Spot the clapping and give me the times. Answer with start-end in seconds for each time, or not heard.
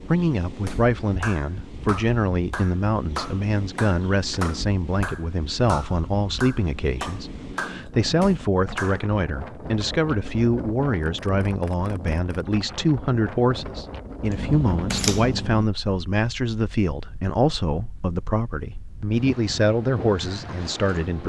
0.7-9.1.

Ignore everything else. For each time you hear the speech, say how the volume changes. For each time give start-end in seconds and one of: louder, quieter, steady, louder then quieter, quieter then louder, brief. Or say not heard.
0.1-21.2 steady.